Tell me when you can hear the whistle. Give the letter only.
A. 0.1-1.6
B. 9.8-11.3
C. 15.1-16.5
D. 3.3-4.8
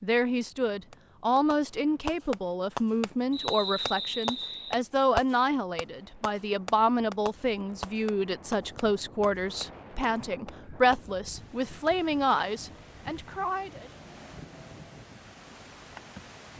D.